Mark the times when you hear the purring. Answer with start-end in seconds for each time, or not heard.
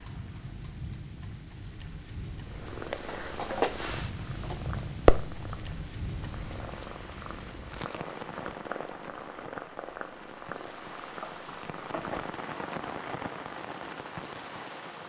2.4-12.3.